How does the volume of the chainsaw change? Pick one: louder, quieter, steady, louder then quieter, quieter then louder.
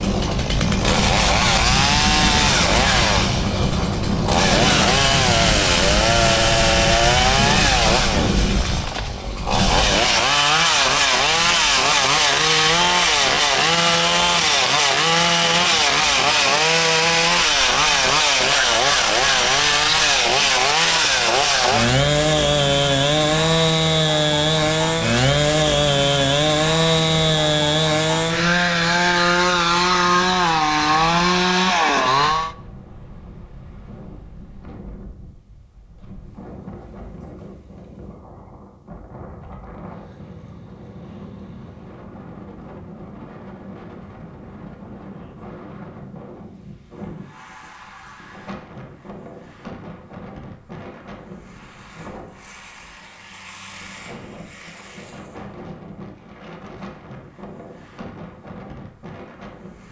steady.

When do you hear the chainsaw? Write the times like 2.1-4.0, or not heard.
0.0-32.5.